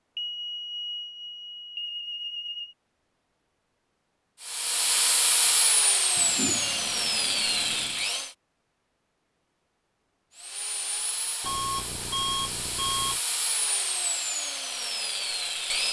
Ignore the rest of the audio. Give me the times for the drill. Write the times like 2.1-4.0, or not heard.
4.4-8.3, 10.3-15.8.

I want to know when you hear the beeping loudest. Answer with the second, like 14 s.
12 s.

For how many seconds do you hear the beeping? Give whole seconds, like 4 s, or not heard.
6 s.